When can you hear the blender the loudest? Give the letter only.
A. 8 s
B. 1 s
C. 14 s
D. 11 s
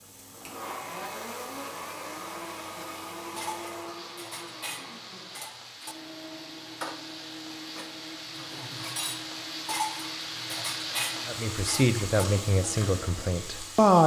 B.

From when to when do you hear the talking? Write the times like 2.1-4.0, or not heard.
11.2-14.0.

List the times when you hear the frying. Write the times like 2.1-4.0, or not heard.
0.0-14.0.